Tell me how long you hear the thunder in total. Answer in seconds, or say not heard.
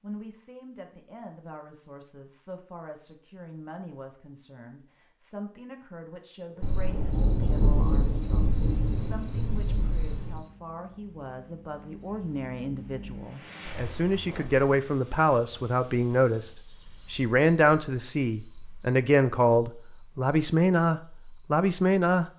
4 s.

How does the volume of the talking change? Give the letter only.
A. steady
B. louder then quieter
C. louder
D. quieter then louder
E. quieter
C.